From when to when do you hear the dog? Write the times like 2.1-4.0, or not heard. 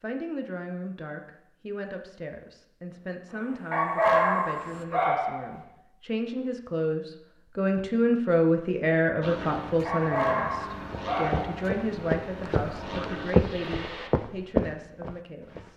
3.7-5.5, 9.8-11.7.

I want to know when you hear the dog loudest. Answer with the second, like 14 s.
4 s.